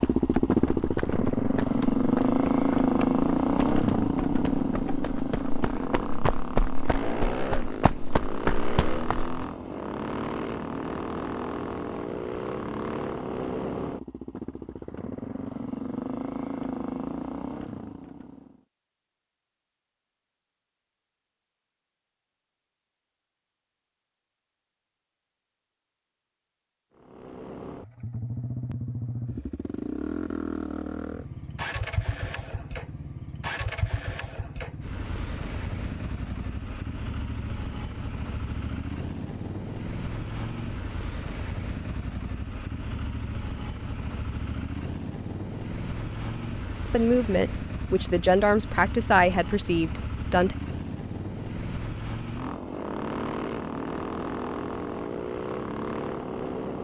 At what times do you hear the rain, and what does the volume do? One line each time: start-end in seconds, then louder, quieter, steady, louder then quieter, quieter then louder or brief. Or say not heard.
not heard.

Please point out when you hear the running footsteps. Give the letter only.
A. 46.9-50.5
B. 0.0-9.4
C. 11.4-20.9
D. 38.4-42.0
B.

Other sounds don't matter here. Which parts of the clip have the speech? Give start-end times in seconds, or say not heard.
46.9-50.5.